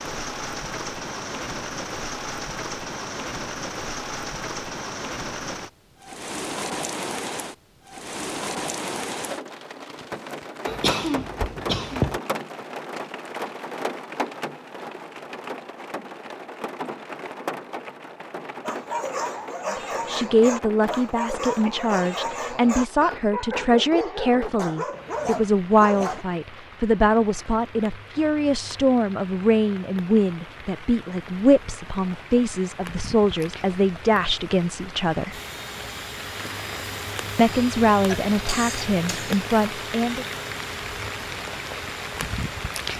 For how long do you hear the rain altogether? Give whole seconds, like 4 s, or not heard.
43 s.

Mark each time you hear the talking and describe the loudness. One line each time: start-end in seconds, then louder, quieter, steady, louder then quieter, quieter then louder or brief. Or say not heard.
19.7-35.4 steady
37.4-40.2 brief.